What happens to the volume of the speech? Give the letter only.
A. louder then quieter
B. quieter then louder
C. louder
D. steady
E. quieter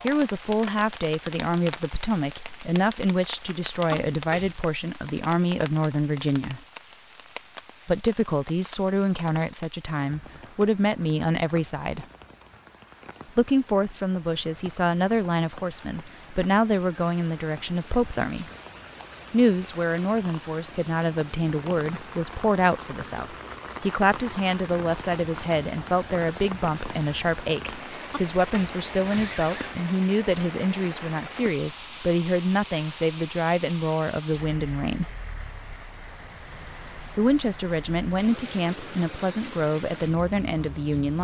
D.